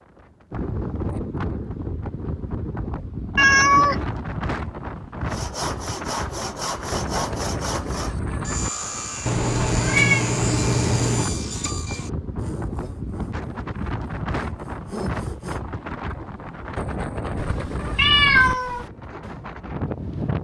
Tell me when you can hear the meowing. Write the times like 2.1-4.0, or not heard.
3.4-4.0, 9.2-11.2, 17.4-18.9.